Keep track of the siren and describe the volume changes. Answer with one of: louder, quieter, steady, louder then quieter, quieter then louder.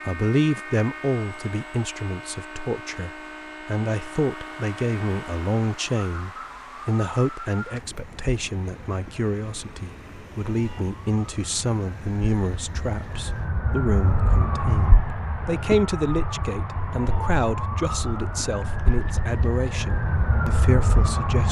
quieter then louder.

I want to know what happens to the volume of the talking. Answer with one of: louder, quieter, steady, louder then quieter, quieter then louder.
steady.